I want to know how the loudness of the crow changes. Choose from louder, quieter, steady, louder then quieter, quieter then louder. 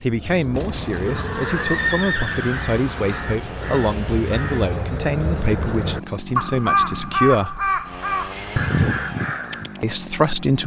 louder.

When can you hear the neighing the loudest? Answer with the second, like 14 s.
2 s.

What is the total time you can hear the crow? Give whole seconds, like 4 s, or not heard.
10 s.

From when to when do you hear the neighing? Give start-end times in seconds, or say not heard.
1.0-3.2, 8.3-9.2.